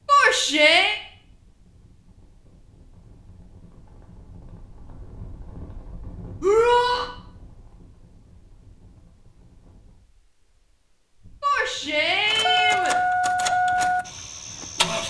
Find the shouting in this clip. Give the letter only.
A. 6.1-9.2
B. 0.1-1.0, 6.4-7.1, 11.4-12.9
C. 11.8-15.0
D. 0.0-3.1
B.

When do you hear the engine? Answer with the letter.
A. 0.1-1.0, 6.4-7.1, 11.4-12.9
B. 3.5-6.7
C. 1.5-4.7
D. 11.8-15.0
D.